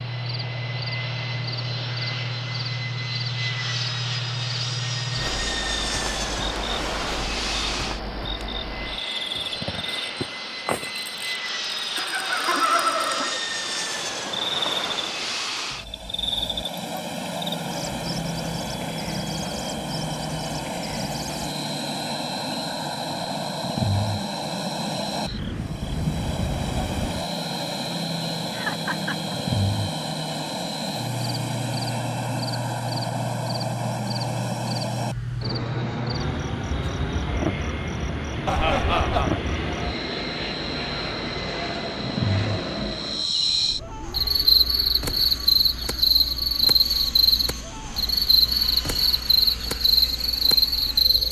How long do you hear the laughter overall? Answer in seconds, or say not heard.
3 s.